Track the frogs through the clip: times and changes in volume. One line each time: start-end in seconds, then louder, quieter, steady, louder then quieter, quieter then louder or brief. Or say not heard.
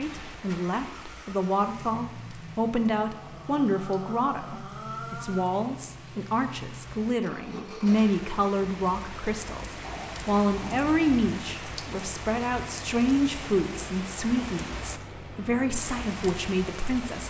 not heard.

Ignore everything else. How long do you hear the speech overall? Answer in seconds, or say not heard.
17 s.